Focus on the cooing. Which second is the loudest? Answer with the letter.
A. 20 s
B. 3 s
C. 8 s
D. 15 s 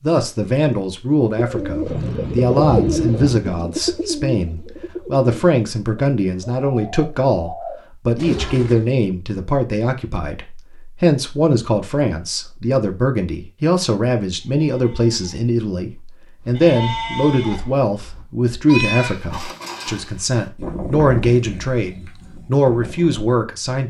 B.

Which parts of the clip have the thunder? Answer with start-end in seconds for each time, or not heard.
1.9-3.4.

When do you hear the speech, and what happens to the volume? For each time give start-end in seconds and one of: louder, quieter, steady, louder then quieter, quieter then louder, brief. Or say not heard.
0.0-23.8 steady.